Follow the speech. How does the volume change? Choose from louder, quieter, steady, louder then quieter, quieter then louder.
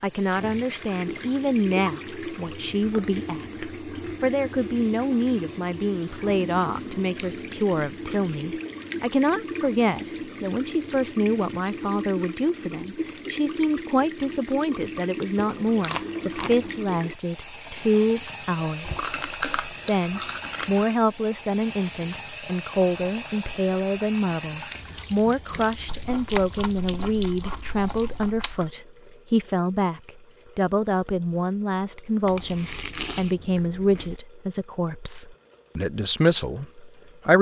steady.